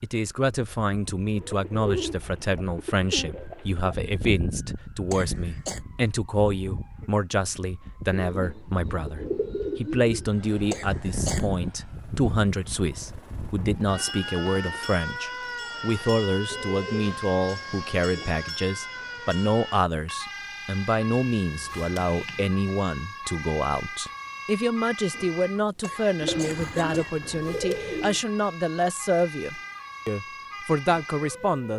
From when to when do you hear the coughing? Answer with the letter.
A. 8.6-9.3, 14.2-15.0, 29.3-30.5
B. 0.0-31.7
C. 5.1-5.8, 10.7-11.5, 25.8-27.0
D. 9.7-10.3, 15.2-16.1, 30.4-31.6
C.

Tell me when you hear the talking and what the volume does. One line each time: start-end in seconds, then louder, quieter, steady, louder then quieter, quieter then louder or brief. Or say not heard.
0.0-31.7 steady.